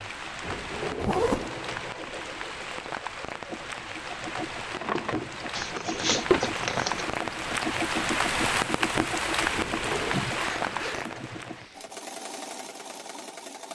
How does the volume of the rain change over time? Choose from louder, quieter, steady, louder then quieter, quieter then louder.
louder.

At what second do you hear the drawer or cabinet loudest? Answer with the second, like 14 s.
6 s.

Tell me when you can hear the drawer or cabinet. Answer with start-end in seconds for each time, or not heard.
0.4-1.2, 4.7-6.5, 9.5-10.3.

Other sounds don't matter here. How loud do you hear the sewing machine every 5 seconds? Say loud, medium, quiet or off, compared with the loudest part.
medium, loud, loud.